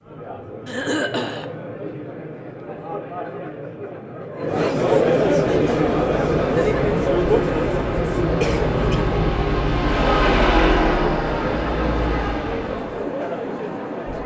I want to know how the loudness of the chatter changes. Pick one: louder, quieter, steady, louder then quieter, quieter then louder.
louder then quieter.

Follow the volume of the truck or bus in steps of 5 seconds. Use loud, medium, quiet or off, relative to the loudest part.
off, loud, loud.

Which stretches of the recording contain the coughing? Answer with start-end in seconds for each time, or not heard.
0.7-1.4, 8.4-9.1.